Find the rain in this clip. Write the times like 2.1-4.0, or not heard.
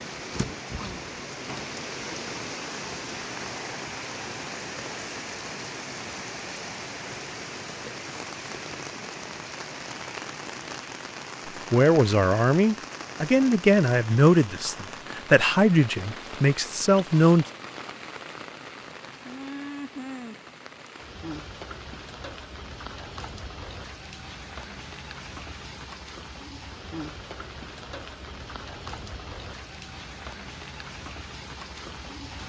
0.0-32.4.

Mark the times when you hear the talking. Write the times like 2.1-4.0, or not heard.
11.7-17.4.